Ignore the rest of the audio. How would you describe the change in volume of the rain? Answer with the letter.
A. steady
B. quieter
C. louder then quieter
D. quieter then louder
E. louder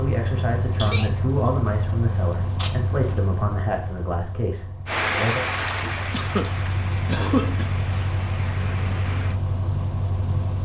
B.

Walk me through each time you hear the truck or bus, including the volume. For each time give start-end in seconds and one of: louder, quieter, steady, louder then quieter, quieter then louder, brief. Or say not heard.
0.0-10.6 quieter then louder.